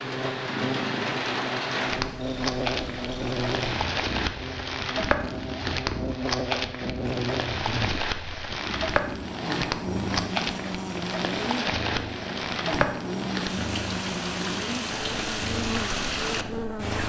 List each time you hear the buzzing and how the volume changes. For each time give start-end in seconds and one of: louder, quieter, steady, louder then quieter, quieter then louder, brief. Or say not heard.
0.0-17.0 steady.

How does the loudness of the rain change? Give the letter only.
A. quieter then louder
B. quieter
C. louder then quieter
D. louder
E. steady
E.